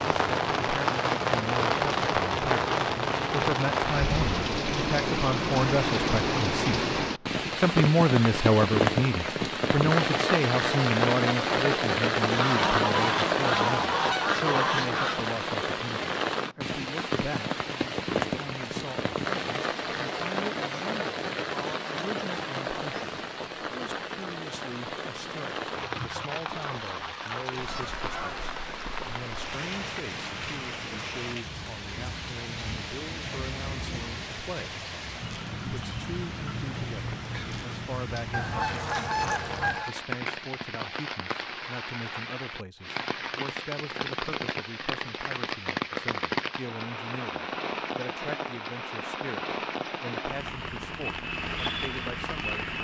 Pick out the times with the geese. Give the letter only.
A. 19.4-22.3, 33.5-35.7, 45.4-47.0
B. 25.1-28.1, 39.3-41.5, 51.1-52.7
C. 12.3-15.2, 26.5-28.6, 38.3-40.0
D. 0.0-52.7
C.